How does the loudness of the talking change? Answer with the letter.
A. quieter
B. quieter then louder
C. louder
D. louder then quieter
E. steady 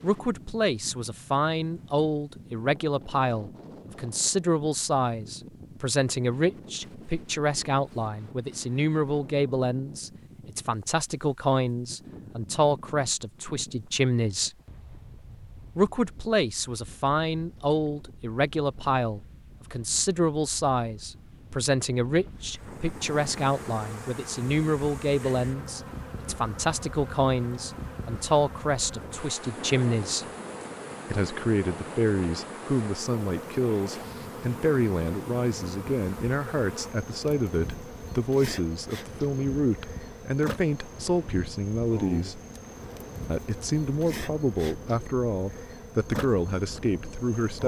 E.